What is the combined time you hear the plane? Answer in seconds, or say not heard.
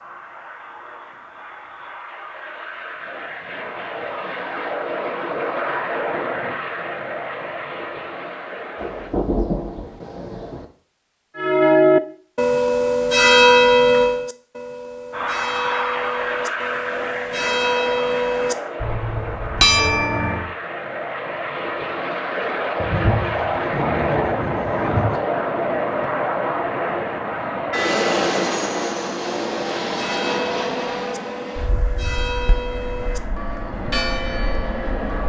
29 s.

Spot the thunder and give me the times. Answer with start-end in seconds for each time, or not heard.
8.8-10.7, 22.8-25.2.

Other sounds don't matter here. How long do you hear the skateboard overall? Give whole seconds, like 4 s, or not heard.
not heard.